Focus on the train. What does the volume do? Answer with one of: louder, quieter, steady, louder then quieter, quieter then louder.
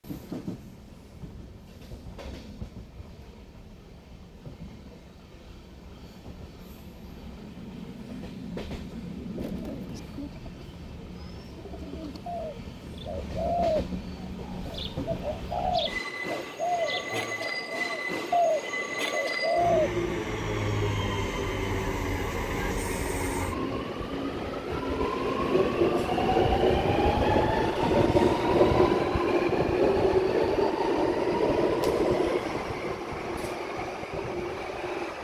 louder.